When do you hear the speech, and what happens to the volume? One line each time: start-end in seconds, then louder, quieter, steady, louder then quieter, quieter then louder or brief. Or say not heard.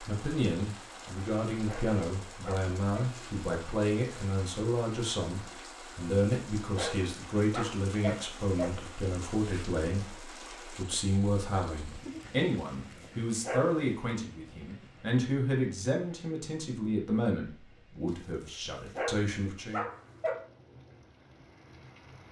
0.0-19.9 steady.